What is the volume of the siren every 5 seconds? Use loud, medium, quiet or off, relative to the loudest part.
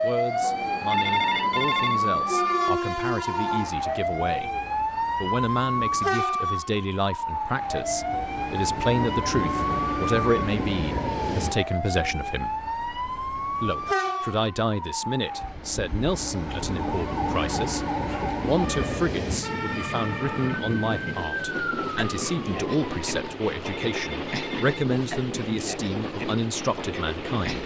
loud, loud, medium, medium, medium, off.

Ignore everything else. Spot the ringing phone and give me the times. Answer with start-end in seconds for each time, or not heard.
0.9-2.0, 23.6-24.9.